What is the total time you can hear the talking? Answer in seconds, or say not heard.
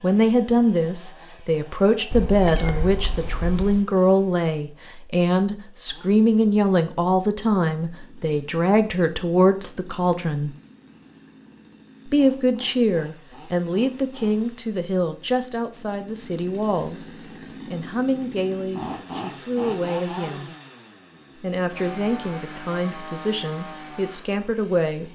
23 s.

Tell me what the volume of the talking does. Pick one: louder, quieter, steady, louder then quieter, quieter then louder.
quieter.